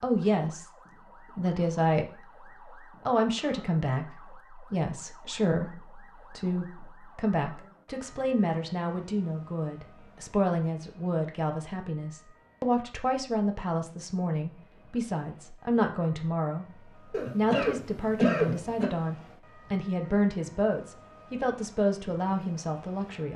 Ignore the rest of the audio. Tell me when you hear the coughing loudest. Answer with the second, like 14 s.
18 s.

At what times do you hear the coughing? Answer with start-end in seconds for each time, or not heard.
17.1-18.9.